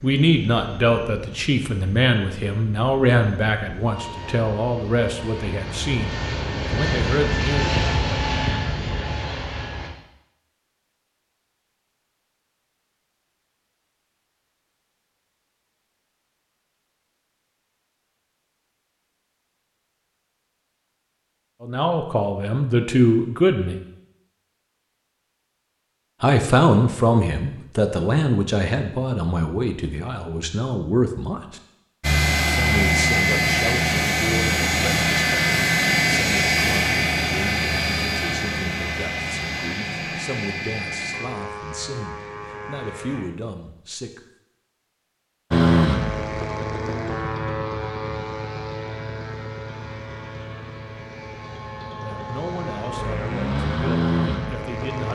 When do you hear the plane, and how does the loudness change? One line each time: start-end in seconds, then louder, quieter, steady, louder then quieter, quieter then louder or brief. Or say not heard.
0.0-9.9 louder
32.0-43.2 quieter
45.5-55.0 quieter then louder.